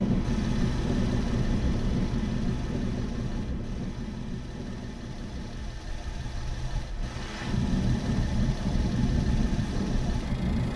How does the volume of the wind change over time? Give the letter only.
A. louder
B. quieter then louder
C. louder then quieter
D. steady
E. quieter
B.